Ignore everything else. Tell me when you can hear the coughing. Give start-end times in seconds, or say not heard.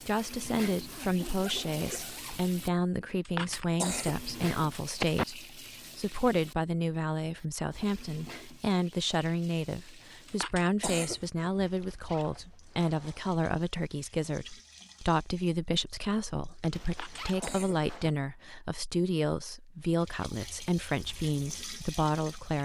3.2-5.2, 10.2-11.5, 16.9-18.1.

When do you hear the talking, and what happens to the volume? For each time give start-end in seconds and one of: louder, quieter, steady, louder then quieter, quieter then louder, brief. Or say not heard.
0.1-22.6 steady.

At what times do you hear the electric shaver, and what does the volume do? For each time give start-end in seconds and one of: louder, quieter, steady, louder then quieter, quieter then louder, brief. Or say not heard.
not heard.